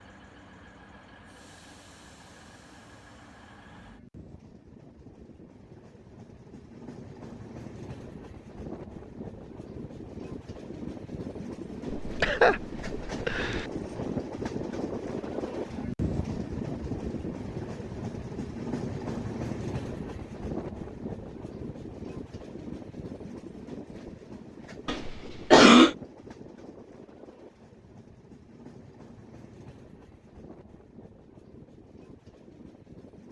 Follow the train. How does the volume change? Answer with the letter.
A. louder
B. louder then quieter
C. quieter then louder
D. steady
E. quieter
B.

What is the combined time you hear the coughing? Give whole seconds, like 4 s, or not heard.
3 s.